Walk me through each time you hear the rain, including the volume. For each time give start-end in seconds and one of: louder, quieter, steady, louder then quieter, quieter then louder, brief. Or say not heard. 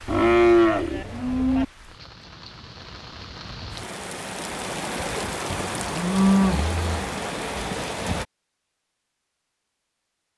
0.0-8.2 louder.